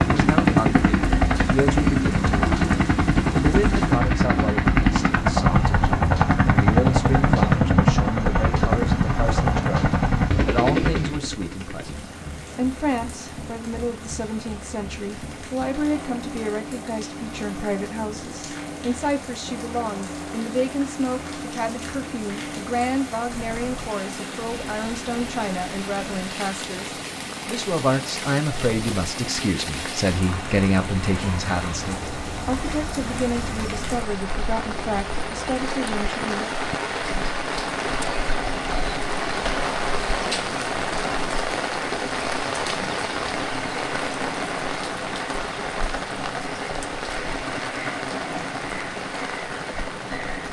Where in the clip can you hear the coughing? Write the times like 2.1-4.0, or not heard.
not heard.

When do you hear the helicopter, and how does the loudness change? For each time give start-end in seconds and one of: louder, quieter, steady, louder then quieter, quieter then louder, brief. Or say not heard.
0.0-50.4 quieter.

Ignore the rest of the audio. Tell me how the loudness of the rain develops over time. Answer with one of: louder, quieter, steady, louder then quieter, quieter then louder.
louder.